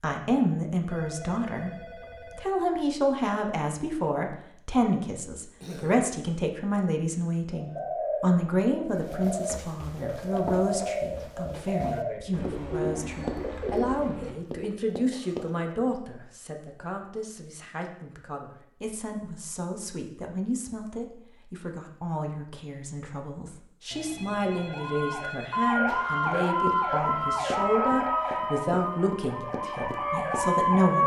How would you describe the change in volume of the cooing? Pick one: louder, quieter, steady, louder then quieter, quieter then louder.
steady.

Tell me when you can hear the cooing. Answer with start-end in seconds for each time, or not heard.
7.5-14.3.